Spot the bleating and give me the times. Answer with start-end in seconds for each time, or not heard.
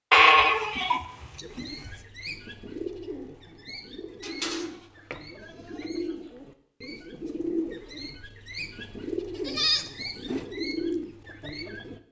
0.1-1.9, 4.2-5.8, 9.3-10.4.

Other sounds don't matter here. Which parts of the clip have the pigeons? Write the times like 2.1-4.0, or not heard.
1.4-12.0.